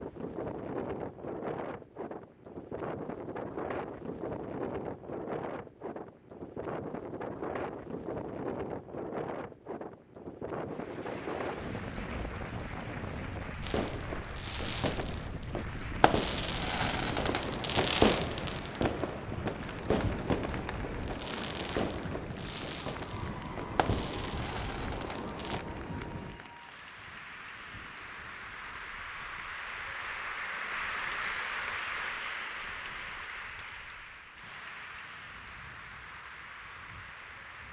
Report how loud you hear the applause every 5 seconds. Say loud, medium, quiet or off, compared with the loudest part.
off, off, medium, medium, medium, medium, loud, medium.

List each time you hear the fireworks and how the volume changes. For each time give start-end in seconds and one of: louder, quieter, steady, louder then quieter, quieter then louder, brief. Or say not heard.
13.6-25.6 louder then quieter.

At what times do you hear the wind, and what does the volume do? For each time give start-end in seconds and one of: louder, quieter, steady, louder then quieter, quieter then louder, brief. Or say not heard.
0.0-37.6 quieter.